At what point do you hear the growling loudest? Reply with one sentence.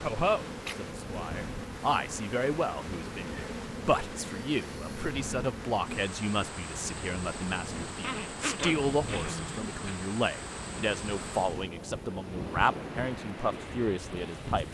The volume of the growling peaks at 9 seconds.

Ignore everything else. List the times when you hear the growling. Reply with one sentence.
You can hear the growling from 8.0 to 10.0 s.